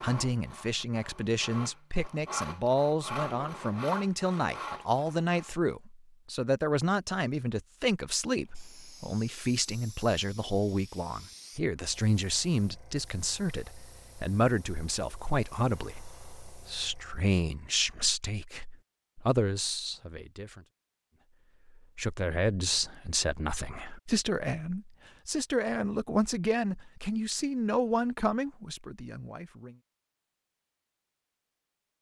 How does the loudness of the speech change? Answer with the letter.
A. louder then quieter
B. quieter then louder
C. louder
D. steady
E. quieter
D.